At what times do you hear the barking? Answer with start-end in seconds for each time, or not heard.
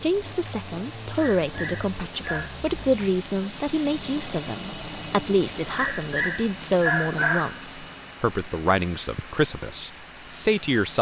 1.1-2.5, 5.7-7.6.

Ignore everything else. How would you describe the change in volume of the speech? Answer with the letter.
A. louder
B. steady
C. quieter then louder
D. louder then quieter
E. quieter
B.